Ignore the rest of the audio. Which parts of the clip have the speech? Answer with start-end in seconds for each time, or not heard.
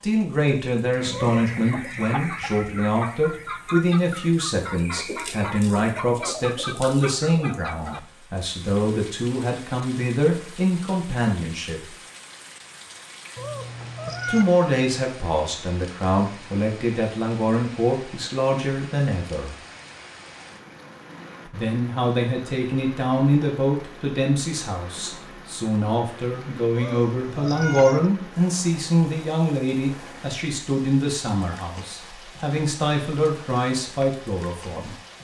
0.0-11.8, 14.2-19.6, 21.5-35.0.